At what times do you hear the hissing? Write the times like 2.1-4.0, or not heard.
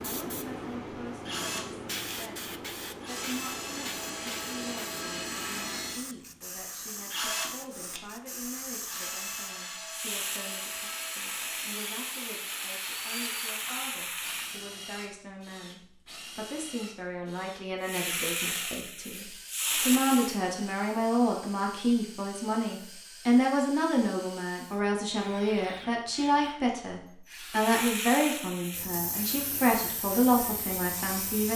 0.0-14.7, 17.8-20.4, 27.5-31.5.